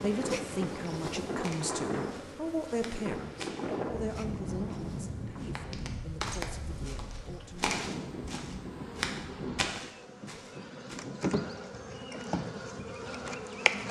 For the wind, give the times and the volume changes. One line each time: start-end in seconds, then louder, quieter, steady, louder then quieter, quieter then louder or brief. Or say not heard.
0.0-13.8 quieter.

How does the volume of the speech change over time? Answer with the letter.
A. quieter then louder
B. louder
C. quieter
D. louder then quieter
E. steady
C.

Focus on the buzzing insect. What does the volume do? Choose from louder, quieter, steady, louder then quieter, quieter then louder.
quieter then louder.